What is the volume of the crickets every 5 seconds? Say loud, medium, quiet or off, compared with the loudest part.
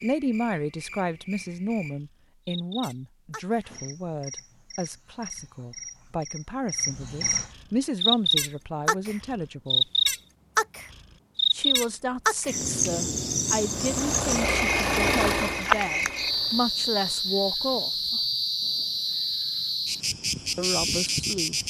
quiet, loud, loud, loud, loud.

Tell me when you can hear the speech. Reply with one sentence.
You can hear the speech from 0.0 to 9.8 s, from 11.5 to 18.2 s and from 20.6 to 21.6 s.